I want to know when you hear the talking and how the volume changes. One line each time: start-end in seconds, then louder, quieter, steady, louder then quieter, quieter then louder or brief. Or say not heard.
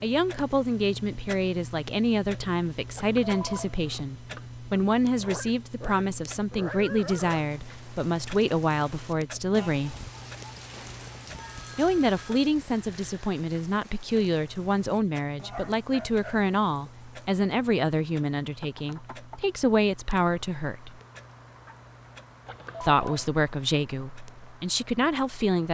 0.0-9.9 steady
11.8-20.9 steady
22.8-25.7 brief.